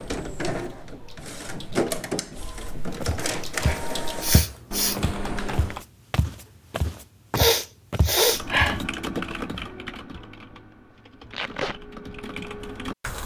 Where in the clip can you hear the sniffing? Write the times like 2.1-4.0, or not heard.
4.2-5.0, 7.3-8.8.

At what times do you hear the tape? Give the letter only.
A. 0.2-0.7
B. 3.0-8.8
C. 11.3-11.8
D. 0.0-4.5
C.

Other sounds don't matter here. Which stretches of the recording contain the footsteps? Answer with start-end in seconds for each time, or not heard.
3.0-8.8.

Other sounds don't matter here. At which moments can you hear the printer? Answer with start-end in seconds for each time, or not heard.
0.0-4.5.